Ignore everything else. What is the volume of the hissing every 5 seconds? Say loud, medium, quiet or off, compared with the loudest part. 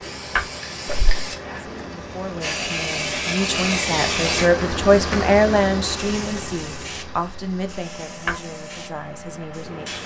loud, medium.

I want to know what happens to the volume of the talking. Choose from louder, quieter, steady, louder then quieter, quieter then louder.
louder then quieter.